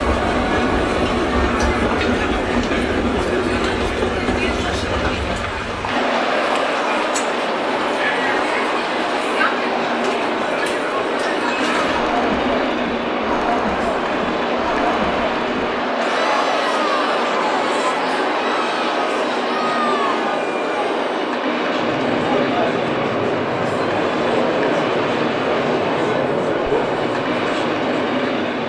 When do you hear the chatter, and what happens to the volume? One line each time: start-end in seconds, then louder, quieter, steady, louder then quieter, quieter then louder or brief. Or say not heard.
0.0-28.6 steady.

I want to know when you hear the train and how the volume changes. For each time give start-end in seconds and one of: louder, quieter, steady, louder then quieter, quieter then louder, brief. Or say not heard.
0.0-28.6 steady.